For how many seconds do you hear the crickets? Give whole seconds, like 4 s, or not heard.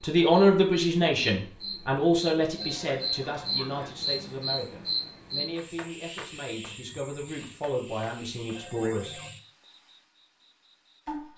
11 s.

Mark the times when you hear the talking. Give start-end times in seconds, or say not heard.
0.0-9.2.